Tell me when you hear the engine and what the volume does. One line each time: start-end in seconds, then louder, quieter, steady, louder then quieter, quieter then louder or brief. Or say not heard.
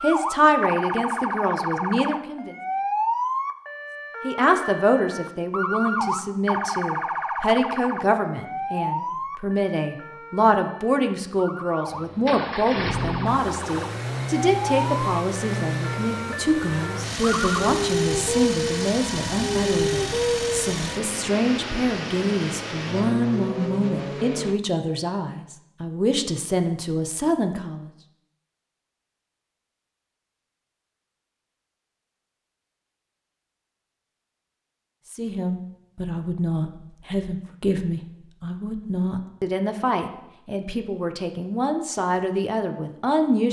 11.8-24.6 steady.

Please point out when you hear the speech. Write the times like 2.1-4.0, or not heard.
0.0-2.5, 4.2-27.9, 35.1-43.4.